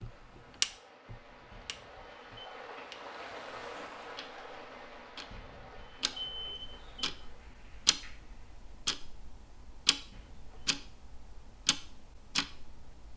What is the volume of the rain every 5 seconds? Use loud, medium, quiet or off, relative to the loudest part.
loud, medium, off.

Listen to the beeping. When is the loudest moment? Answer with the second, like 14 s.
6 s.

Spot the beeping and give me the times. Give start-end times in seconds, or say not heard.
1.5-2.5, 5.3-7.2, 10.1-10.8.